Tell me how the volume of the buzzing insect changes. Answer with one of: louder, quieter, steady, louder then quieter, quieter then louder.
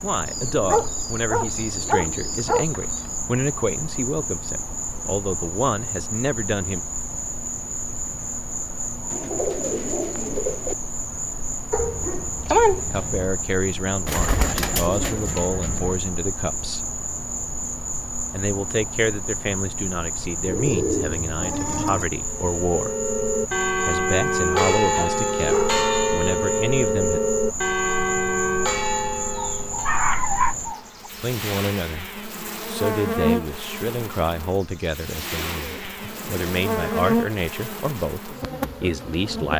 steady.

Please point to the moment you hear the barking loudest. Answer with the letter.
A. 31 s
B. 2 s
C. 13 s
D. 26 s
C.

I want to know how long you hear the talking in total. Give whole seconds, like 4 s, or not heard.
27 s.